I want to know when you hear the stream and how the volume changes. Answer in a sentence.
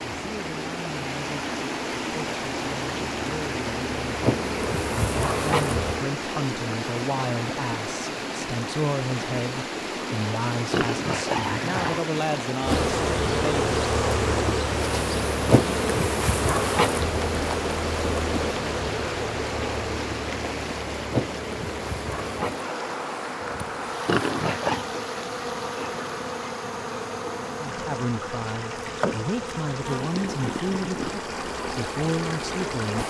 The stream can be heard from 0.0 to 33.0 s, getting quieter.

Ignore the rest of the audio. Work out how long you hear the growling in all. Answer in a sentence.
The growling can be heard for 2 seconds in total.